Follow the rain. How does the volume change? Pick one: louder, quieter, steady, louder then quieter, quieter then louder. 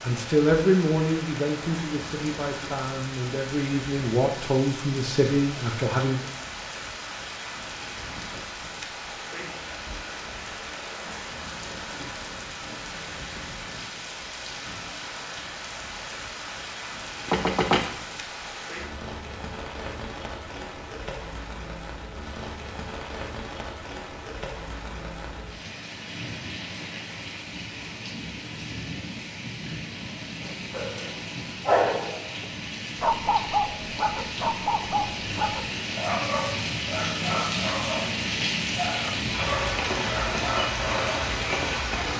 louder.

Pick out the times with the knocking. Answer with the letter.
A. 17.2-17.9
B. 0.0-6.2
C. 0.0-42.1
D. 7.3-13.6
A.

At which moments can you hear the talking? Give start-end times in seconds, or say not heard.
0.0-6.2.